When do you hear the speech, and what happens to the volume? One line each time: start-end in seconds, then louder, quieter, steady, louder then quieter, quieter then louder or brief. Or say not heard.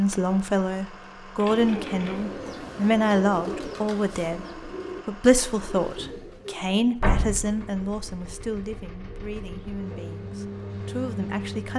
0.0-11.7 quieter.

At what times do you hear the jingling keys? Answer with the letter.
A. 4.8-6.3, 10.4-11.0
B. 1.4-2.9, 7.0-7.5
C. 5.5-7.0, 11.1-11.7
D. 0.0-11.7
B.